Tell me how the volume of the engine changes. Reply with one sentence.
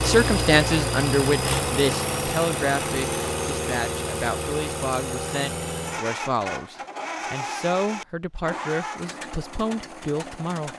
The volume of the engine goes down.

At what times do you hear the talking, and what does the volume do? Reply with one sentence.
The talking can be heard from 0.0 to 10.7 s, getting quieter.